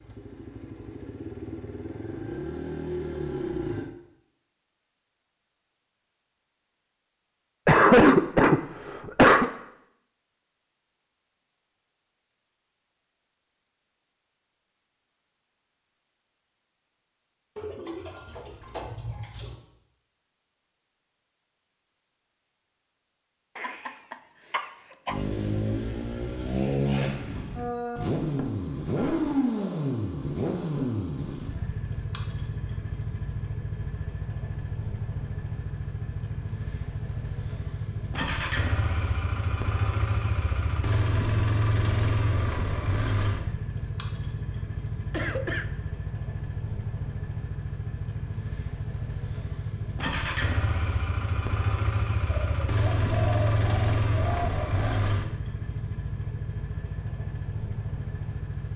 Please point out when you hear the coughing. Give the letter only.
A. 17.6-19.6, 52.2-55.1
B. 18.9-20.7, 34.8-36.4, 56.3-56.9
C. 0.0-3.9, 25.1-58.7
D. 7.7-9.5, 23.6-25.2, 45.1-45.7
D.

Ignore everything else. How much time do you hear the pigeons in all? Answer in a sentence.
You can hear the pigeons for 5 seconds altogether.